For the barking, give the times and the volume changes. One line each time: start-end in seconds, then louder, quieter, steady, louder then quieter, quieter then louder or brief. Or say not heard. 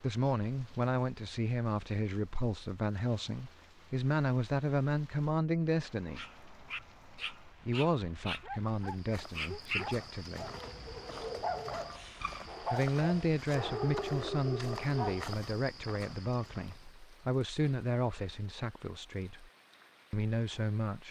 6.1-15.3 louder.